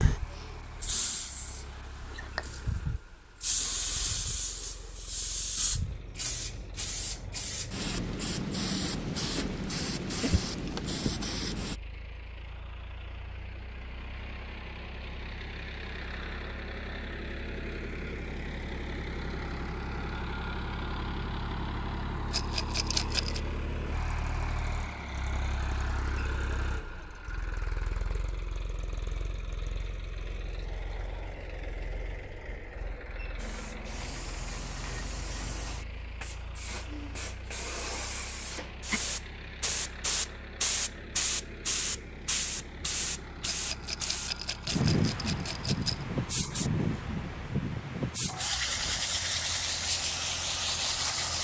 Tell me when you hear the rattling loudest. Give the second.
23 s.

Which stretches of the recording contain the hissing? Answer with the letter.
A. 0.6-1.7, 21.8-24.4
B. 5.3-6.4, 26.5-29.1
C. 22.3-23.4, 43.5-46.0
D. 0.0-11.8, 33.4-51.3
D.